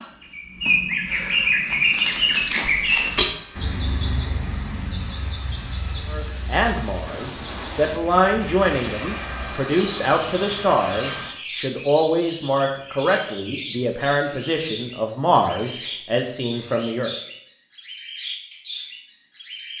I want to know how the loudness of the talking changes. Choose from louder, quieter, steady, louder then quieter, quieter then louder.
steady.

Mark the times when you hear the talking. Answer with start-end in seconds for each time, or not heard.
6.1-17.1.